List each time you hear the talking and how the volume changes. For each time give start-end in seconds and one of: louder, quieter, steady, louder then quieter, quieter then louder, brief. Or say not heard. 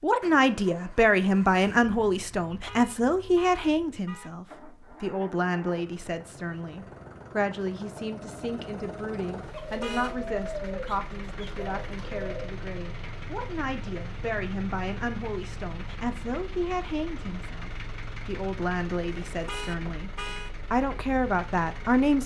0.0-20.1 quieter
20.7-22.2 brief.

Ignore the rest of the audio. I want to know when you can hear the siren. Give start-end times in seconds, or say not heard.
not heard.